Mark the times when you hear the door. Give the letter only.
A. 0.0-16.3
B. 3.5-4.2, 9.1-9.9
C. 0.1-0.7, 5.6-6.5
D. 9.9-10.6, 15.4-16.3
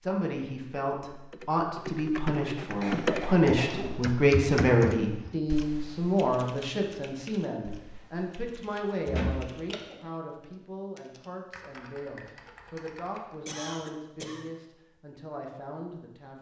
B.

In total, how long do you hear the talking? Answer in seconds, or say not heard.
16 s.